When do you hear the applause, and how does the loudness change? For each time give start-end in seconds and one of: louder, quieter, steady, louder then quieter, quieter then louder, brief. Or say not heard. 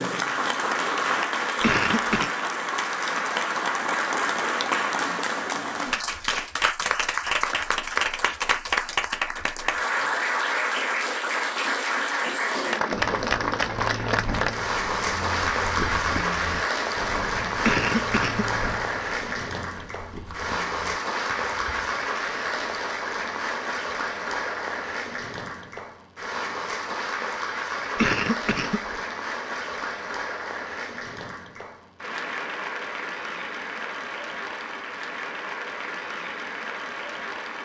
0.0-37.6 quieter.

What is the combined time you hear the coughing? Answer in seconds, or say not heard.
3 s.